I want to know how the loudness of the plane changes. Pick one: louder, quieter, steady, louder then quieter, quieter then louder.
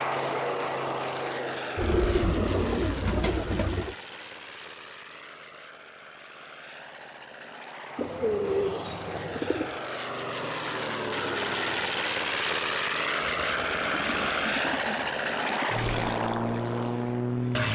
quieter then louder.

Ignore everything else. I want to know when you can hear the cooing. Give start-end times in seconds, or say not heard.
1.8-4.0, 8.0-9.8, 13.4-15.7.